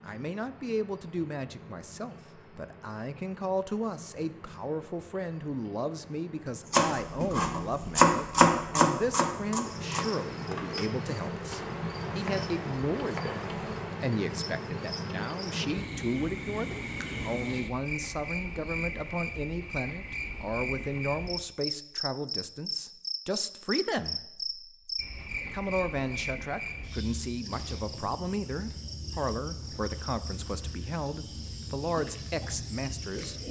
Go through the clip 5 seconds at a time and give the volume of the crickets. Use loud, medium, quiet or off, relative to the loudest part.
quiet, medium, loud, loud, loud, medium, medium.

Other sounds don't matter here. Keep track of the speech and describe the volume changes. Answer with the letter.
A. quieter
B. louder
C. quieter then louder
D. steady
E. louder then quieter
D.